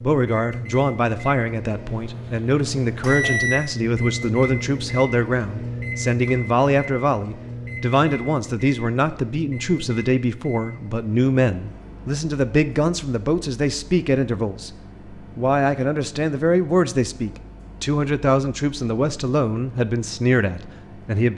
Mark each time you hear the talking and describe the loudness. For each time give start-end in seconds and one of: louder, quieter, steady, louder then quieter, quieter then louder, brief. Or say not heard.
0.0-21.3 steady.